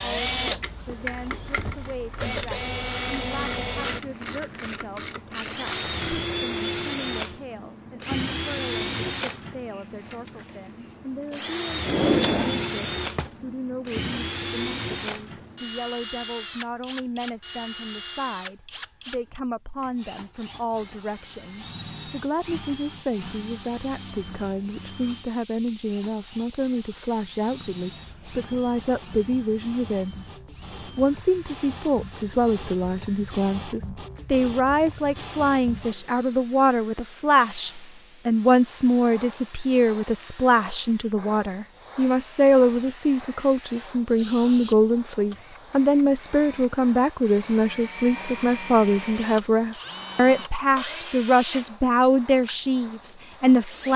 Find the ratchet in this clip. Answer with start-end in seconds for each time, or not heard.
0.2-6.0.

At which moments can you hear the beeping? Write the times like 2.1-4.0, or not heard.
not heard.